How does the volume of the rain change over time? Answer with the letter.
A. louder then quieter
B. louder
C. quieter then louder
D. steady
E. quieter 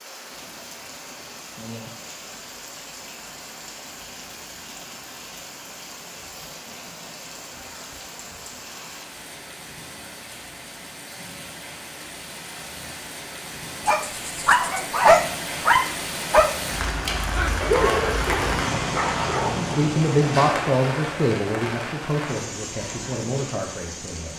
B.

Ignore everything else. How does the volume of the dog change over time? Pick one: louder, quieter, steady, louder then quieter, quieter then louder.
quieter.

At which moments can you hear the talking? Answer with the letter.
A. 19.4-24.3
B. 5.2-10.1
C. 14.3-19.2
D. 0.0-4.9
A.